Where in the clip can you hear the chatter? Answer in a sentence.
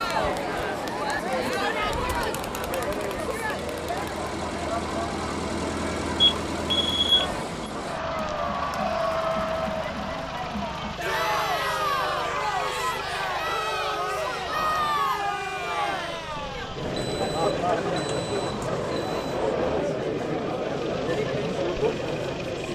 You can hear the chatter from 0.0 to 22.7 s.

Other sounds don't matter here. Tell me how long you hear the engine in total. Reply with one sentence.
You can hear the engine for 23 seconds altogether.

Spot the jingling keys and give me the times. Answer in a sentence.
You can't hear the jingling keys here.